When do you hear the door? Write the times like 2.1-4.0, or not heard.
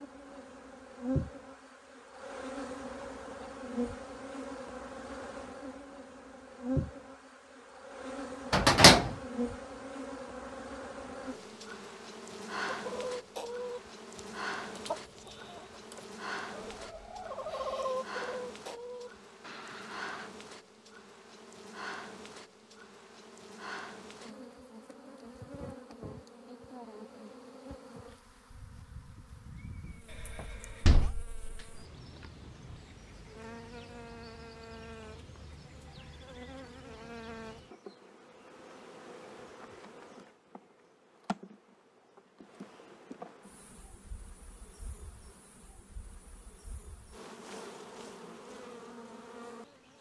8.5-9.1, 30.4-31.6.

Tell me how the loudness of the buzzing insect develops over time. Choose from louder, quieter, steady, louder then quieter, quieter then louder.
quieter.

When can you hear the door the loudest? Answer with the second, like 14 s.
9 s.